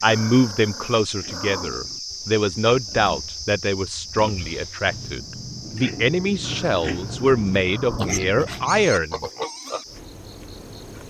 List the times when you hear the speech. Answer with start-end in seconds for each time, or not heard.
0.0-9.3.